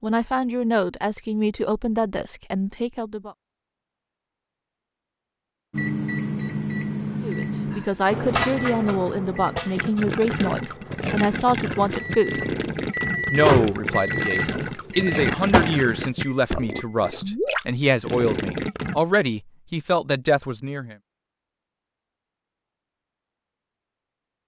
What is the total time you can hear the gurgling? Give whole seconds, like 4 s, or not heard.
9 s.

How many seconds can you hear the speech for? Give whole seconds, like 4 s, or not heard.
16 s.